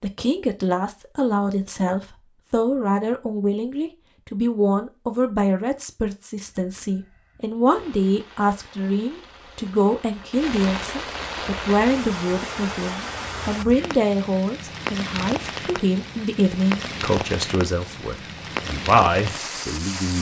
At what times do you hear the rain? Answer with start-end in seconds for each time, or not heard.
7.7-20.1.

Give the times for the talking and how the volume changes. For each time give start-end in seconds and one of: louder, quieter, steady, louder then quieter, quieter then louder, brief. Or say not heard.
0.0-20.1 steady.